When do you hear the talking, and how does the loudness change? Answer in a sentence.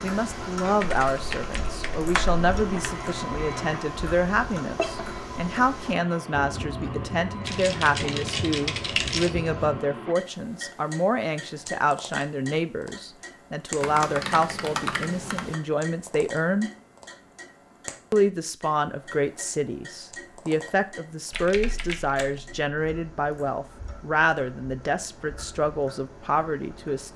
You can hear the talking from 0.0 to 16.7 s, at a steady volume; and from 18.1 to 27.1 s, at a steady volume.